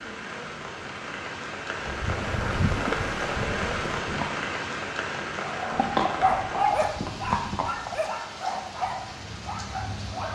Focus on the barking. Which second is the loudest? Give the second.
7 s.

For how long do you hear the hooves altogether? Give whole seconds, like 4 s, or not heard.
5 s.